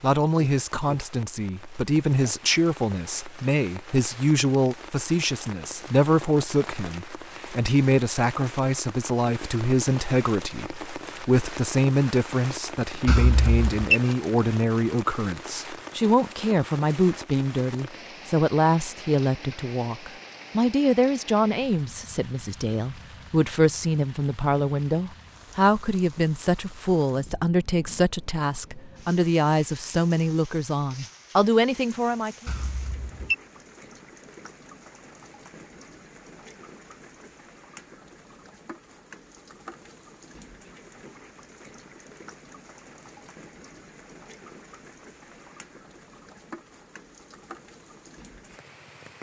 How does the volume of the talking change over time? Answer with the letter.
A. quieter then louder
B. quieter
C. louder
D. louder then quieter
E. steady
E.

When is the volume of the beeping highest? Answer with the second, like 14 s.
14 s.